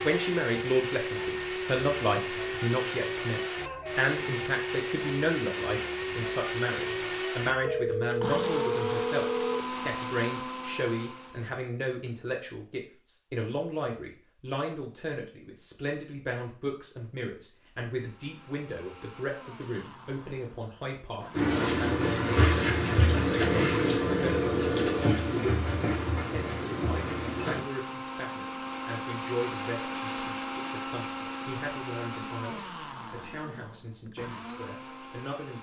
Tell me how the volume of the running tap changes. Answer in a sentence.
The loudness of the running tap goes down.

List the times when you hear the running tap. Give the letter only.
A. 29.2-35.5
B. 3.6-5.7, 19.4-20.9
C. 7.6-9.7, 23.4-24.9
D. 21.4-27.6
D.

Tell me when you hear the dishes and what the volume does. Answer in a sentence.
You can't hear the dishes here.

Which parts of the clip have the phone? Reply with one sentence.
The phone can be heard from 7.6 to 9.7 s and from 23.4 to 24.9 s.